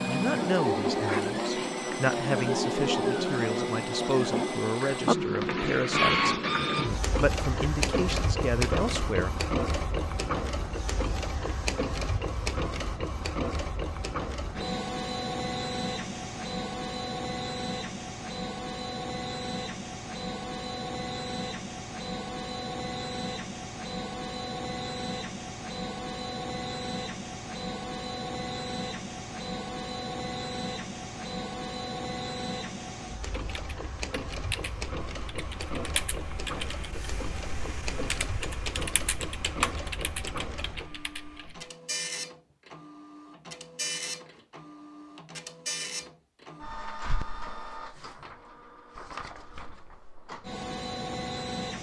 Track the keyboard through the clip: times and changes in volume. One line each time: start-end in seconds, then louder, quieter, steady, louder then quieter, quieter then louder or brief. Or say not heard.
33.4-41.6 louder then quieter.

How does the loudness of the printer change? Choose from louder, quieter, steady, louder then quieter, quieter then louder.
quieter.